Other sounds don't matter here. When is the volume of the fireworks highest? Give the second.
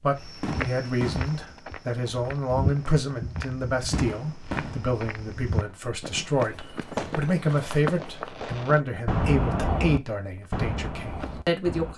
9 s.